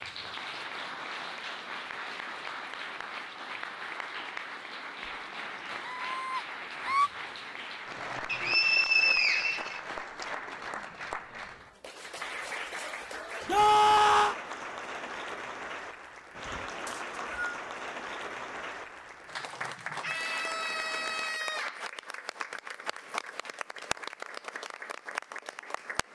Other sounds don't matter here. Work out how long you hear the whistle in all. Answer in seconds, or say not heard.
3 s.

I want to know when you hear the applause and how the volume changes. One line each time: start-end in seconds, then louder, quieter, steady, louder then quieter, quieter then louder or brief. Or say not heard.
0.0-26.1 steady.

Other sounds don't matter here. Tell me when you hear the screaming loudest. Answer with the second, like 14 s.
14 s.